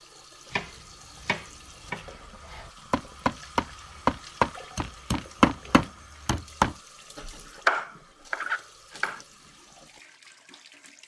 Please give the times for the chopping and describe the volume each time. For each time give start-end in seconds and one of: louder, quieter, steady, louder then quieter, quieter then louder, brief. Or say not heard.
0.5-6.8 louder
7.5-9.2 brief.